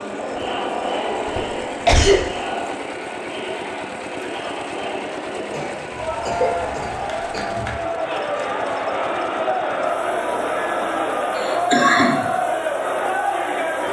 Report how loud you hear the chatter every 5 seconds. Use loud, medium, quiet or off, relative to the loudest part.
medium, loud, loud.